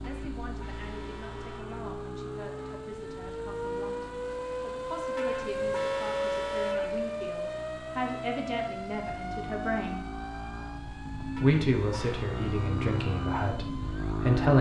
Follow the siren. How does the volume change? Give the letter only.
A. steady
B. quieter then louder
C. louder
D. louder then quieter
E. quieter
D.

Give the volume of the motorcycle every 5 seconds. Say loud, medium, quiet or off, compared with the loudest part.
medium, medium, loud.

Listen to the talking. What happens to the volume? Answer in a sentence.
The volume of the talking goes up.